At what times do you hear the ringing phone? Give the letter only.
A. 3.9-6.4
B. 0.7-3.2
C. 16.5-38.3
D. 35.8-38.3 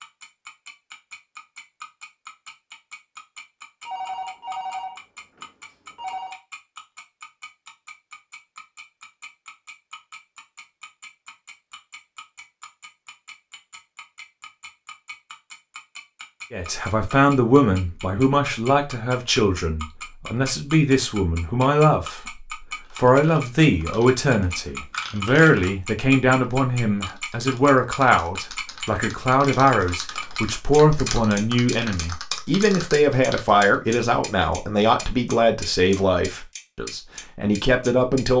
A.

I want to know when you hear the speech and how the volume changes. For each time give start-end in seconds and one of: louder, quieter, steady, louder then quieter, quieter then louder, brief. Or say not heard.
16.5-38.3 steady.